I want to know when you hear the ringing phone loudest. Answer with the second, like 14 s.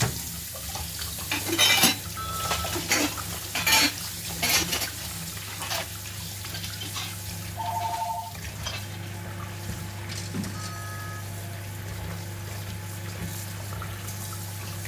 8 s.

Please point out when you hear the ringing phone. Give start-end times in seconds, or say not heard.
2.1-2.6, 7.5-8.3, 10.5-11.7.